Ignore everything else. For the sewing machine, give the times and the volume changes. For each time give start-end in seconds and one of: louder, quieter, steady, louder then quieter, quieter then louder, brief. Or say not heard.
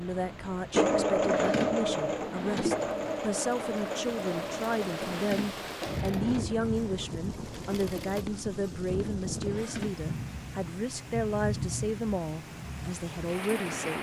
0.0-8.2 quieter.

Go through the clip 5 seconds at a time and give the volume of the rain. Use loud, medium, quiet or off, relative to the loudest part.
medium, loud, loud.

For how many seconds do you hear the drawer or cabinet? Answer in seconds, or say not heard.
4 s.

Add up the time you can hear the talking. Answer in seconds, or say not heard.
14 s.